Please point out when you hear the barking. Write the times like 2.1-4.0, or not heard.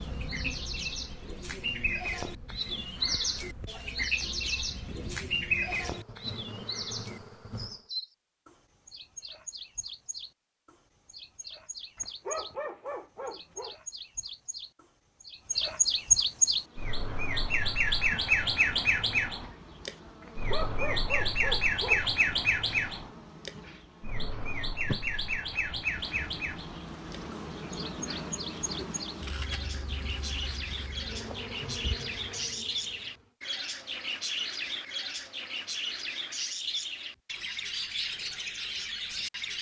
11.9-13.8, 20.2-22.1.